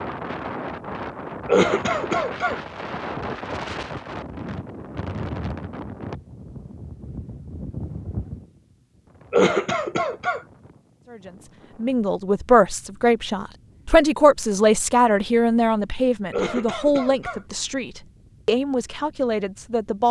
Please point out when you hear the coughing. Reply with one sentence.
The coughing can be heard from 1.4 to 2.6 s, from 9.3 to 10.4 s and from 16.3 to 17.4 s.